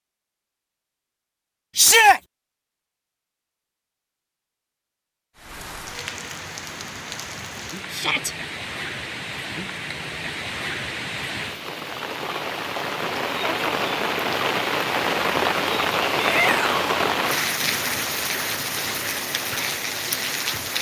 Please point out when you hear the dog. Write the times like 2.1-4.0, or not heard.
not heard.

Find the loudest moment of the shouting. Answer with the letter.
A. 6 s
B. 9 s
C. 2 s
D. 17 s
C.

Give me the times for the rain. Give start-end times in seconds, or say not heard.
5.3-20.7.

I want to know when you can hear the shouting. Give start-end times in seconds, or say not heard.
1.8-2.2, 7.9-8.3, 16.1-16.8.